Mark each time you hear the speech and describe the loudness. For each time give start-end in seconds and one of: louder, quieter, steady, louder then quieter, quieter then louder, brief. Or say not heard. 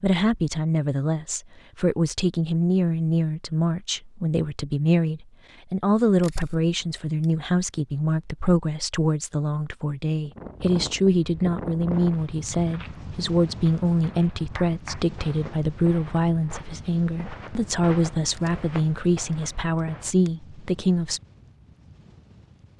0.0-21.2 steady.